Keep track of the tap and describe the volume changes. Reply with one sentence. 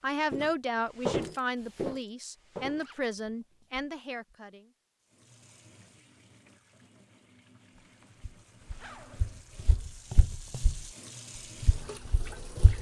The volume of the tap goes up.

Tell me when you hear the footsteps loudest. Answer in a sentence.
The volume of the footsteps peaks at 1 second.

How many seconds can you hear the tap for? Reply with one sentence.
The tap can be heard for 8 seconds in total.